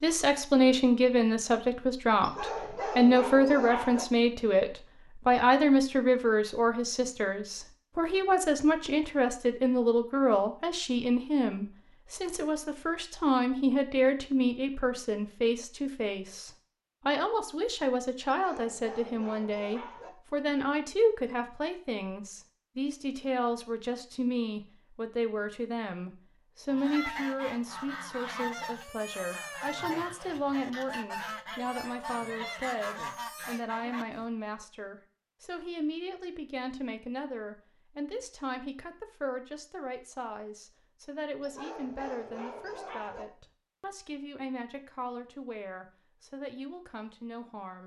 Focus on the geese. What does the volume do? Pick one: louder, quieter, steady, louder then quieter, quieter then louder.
steady.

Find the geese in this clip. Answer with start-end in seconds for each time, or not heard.
26.6-34.2.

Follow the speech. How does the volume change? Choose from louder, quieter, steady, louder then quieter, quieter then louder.
quieter.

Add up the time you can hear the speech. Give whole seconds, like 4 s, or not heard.
48 s.